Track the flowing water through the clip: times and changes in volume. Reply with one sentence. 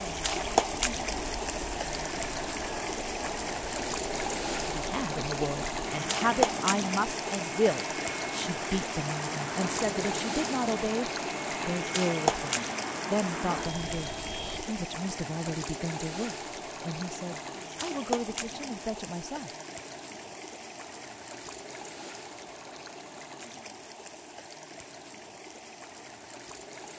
You can hear the flowing water from 0.0 to 26.9 s, getting quieter.